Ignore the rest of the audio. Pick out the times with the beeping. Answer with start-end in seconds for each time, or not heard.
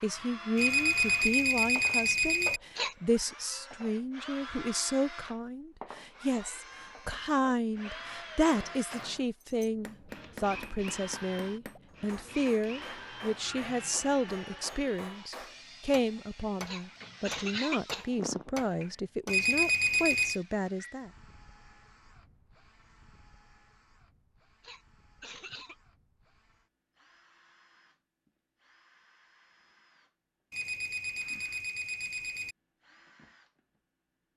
0.6-2.6, 19.2-20.4, 30.5-32.5.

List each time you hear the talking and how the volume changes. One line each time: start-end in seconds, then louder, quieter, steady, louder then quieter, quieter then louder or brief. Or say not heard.
0.0-21.1 steady.